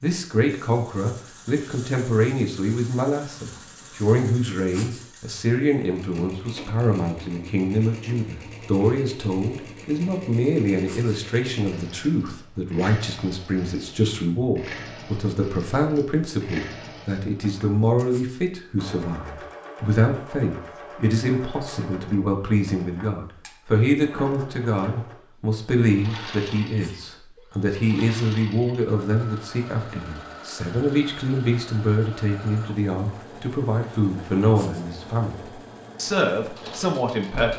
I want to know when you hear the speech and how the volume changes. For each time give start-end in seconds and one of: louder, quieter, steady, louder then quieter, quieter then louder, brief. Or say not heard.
0.0-37.5 steady.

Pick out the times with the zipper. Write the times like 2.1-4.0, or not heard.
not heard.